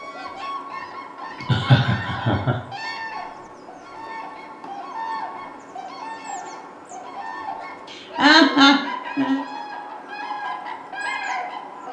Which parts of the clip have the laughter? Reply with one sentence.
The laughter can be heard from 1.4 to 2.5 s and from 7.9 to 9.4 s.